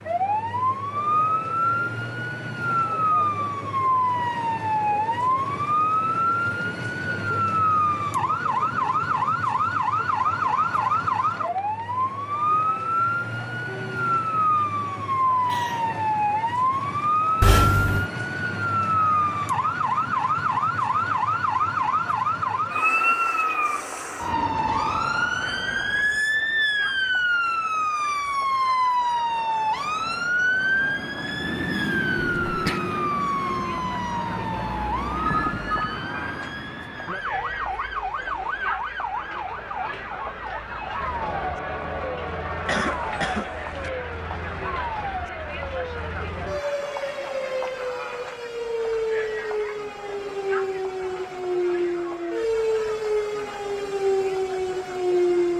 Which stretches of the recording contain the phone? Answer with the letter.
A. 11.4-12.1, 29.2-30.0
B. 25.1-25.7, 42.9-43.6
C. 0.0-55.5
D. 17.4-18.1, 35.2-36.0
D.